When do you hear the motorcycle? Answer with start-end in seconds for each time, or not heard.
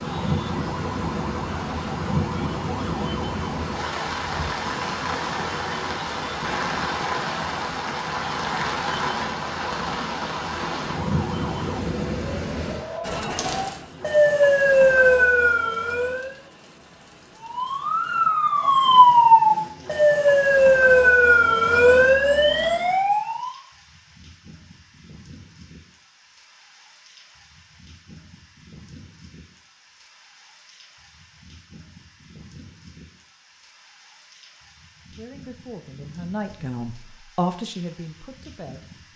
not heard.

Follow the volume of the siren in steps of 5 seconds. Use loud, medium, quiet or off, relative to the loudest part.
quiet, quiet, medium, loud, loud, off, off, off.